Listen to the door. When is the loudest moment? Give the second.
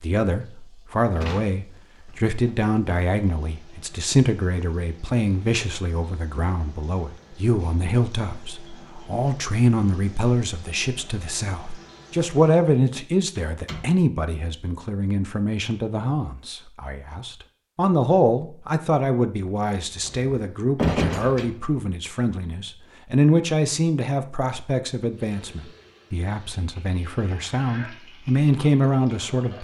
21 s.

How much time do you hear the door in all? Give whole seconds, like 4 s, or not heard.
4 s.